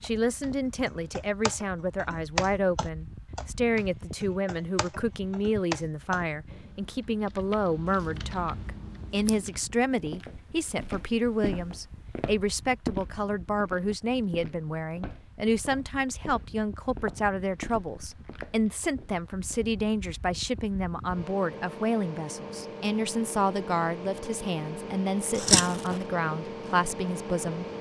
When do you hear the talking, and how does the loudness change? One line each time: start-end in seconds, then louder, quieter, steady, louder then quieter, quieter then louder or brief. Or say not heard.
0.0-27.6 steady.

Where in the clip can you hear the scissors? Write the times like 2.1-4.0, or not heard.
7.8-9.4, 25.3-26.0.